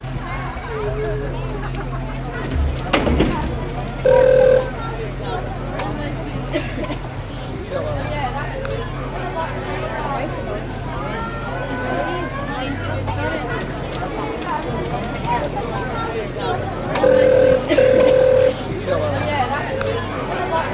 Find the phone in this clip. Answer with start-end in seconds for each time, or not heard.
4.0-4.7, 17.0-18.6.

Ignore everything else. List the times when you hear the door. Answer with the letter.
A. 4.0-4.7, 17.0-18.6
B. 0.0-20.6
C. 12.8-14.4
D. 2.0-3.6
D.